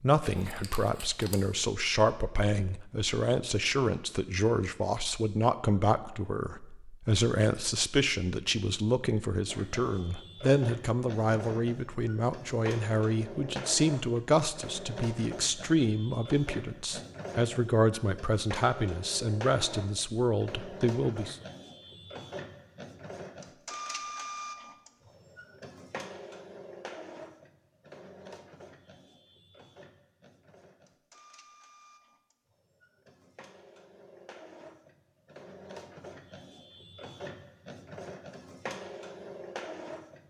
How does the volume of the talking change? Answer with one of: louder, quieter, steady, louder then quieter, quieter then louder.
steady.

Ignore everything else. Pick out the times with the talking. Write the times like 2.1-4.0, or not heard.
0.0-21.4.